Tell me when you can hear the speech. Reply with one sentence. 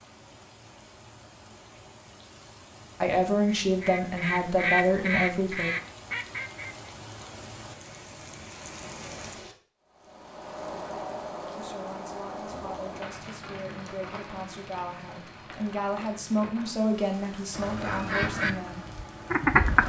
The speech can be heard from 3.0 to 5.7 s and from 11.6 to 18.9 s.